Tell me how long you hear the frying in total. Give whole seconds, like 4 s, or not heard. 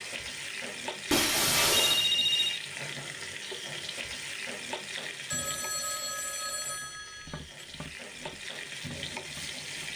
10 s.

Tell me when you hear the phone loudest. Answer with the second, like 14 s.
2 s.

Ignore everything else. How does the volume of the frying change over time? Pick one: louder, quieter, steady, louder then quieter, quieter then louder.
quieter then louder.